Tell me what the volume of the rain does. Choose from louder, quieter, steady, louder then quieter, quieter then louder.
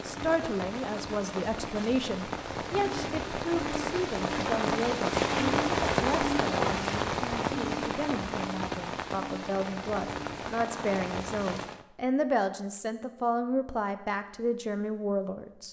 louder then quieter.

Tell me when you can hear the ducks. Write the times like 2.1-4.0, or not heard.
not heard.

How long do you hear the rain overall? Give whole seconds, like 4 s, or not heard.
12 s.